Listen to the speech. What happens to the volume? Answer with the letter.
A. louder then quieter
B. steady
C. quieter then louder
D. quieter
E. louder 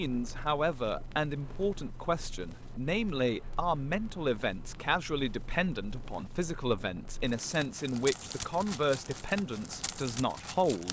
B.